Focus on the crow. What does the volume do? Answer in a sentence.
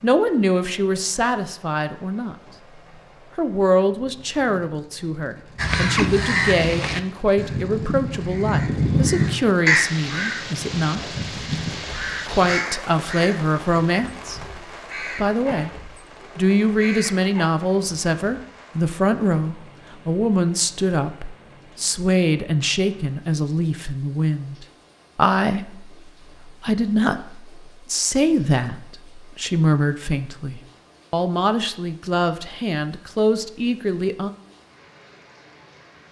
The loudness of the crow goes down.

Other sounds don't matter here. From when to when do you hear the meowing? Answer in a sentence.
The meowing can't be heard in this clip.